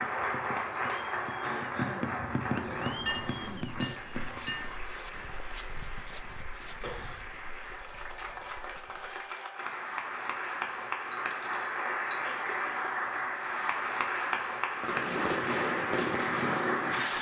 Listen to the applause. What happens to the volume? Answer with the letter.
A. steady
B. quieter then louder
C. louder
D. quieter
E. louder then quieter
B.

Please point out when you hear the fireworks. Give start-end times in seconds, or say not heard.
0.0-4.8, 14.8-17.1.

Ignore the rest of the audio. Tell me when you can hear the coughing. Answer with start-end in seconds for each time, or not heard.
1.4-3.8, 6.8-7.2, 12.2-13.1.